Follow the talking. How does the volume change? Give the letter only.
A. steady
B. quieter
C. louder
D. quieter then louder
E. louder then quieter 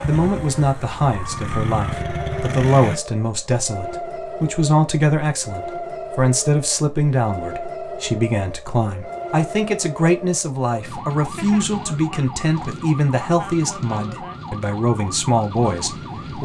A.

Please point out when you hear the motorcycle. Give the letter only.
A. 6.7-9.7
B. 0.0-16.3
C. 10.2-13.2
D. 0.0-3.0
D.